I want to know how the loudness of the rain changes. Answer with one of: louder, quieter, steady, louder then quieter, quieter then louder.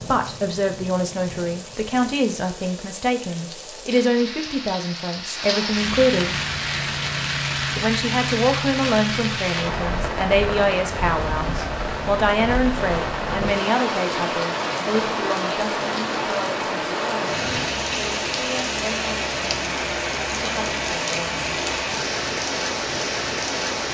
louder.